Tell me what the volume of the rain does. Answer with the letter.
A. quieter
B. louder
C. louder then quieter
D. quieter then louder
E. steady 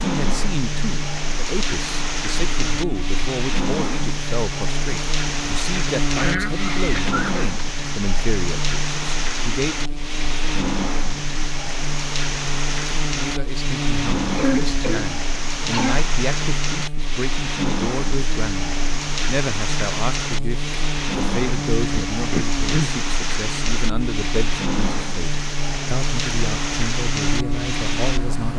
E.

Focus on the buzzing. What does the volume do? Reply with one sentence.
The volume of the buzzing stays about the same.